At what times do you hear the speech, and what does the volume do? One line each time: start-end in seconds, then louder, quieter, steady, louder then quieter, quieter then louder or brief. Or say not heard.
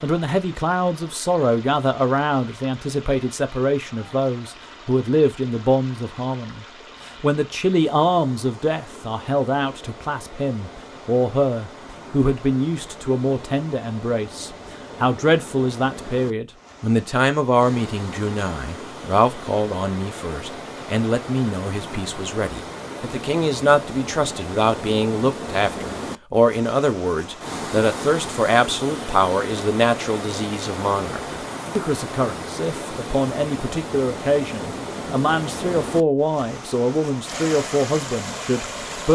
0.0-39.1 steady.